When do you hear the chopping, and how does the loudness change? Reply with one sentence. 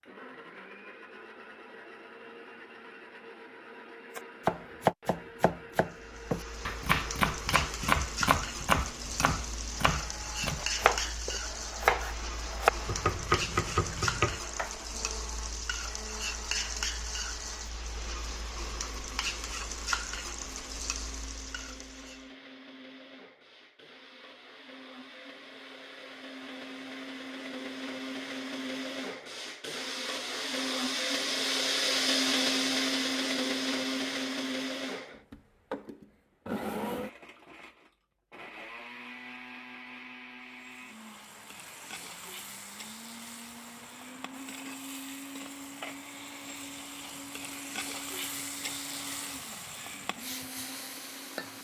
You can hear the chopping from 4.2 to 14.7 s, at a steady volume.